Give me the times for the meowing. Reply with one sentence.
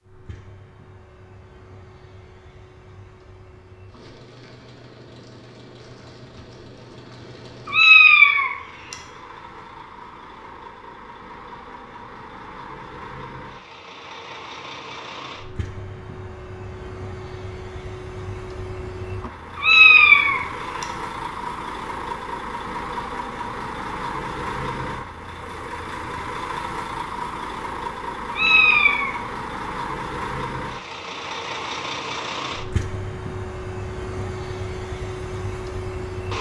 The meowing can be heard from 7.7 to 8.9 s, from 19.6 to 20.9 s and from 28.3 to 29.1 s.